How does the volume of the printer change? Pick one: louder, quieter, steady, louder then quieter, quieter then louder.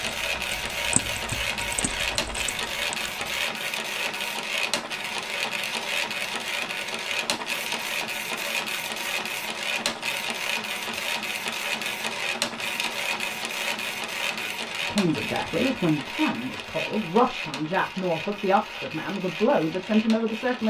quieter.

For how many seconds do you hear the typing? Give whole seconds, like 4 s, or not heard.
3 s.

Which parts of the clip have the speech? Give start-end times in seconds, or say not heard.
14.8-20.6.